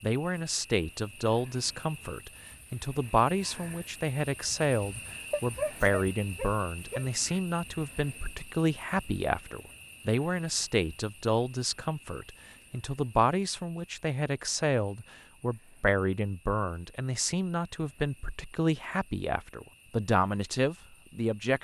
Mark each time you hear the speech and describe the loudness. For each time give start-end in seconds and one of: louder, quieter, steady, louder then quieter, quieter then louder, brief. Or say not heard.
0.0-21.5 steady.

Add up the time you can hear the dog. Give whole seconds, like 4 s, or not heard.
2 s.